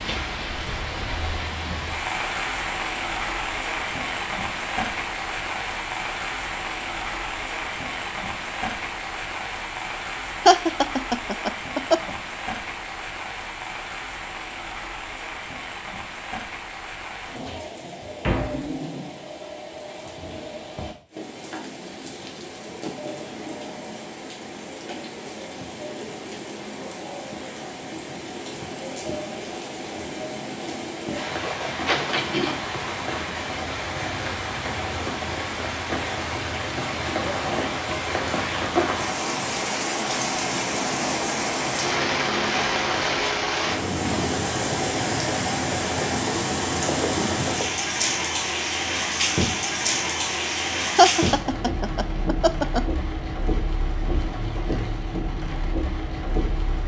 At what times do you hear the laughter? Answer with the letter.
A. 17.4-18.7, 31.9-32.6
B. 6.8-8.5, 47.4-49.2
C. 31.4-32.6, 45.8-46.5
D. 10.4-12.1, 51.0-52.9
D.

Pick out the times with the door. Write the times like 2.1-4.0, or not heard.
17.4-18.7, 31.9-32.6.